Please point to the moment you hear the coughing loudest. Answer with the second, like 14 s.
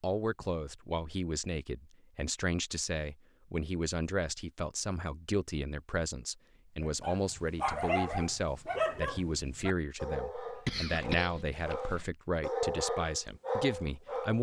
11 s.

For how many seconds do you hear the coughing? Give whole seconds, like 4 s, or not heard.
2 s.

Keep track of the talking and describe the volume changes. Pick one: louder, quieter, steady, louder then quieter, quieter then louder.
steady.